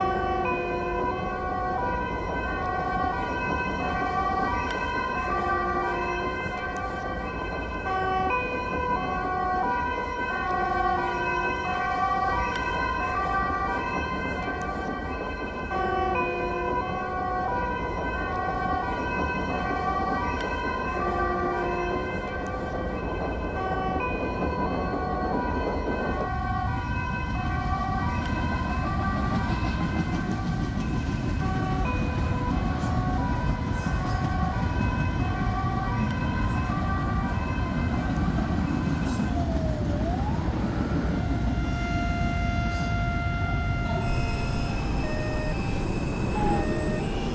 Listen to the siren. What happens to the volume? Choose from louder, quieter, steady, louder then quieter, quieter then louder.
quieter.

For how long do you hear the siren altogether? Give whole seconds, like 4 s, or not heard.
47 s.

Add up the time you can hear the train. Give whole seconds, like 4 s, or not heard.
47 s.